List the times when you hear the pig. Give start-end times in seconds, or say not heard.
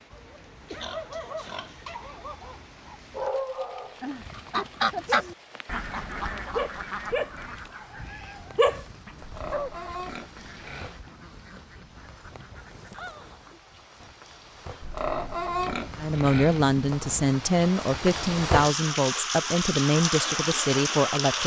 0.7-2.0, 9.2-10.9, 14.8-16.6.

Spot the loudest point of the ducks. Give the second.
5 s.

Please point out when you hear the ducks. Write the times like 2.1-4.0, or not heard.
4.1-14.1.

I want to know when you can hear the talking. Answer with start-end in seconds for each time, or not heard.
15.9-21.4.